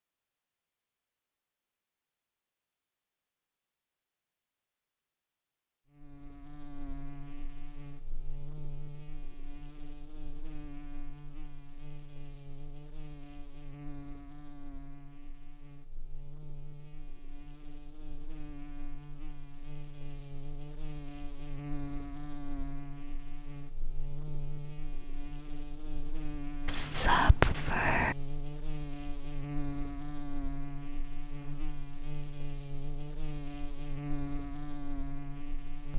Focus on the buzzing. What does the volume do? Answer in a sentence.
The volume of the buzzing goes up.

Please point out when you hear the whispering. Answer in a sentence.
You can hear the whispering from 26.6 to 28.1 s.